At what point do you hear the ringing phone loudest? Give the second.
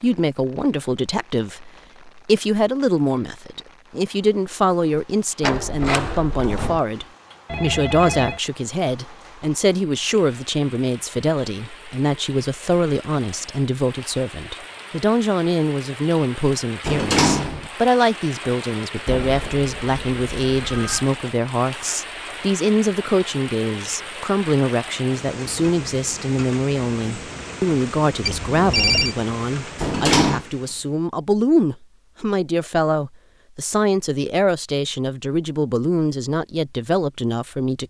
29 s.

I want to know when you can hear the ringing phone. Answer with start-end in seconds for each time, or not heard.
7.5-8.4, 19.1-21.1, 28.2-29.1.